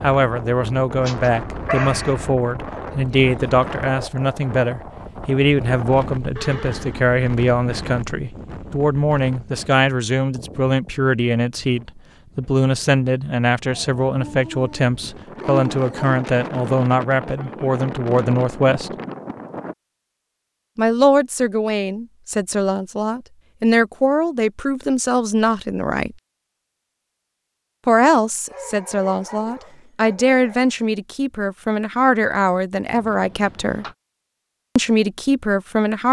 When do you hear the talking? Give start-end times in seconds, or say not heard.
0.0-18.9, 20.8-26.1, 27.9-33.9, 34.8-36.0.